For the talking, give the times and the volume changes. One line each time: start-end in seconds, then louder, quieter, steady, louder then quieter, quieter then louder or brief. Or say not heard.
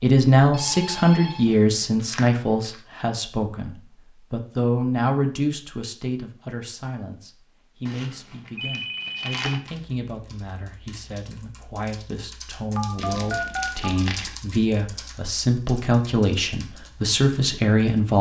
0.0-18.1 quieter then louder.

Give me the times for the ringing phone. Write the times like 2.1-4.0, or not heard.
0.5-1.9, 8.6-9.6, 12.8-14.0.